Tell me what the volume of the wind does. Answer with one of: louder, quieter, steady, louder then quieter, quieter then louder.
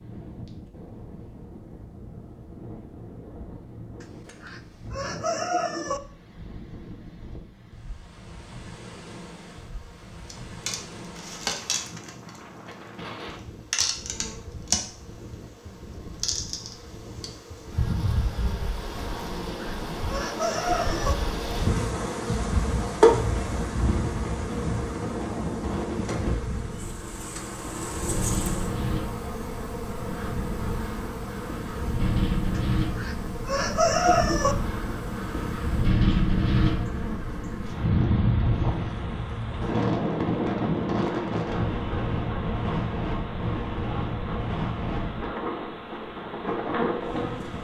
louder.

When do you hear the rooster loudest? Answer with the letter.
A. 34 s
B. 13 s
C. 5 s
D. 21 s
A.